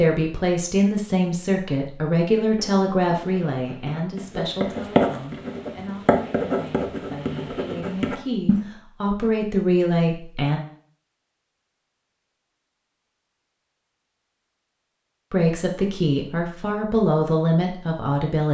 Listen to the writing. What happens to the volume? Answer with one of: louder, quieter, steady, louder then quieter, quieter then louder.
louder then quieter.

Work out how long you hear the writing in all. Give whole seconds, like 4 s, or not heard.
6 s.